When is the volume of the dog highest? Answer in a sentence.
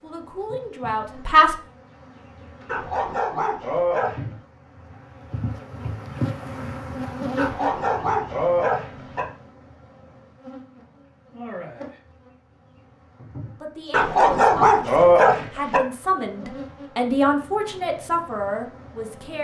The loudest moment of the dog is at 15 seconds.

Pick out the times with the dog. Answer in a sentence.
The dog can be heard from 2.6 to 4.2 s, from 7.3 to 9.2 s and from 13.9 to 15.8 s.